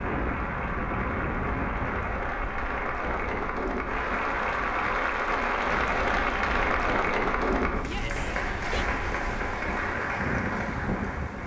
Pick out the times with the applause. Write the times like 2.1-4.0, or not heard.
0.0-11.4.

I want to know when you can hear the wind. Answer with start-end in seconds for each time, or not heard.
0.0-11.4.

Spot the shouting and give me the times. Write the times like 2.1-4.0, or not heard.
7.8-8.8.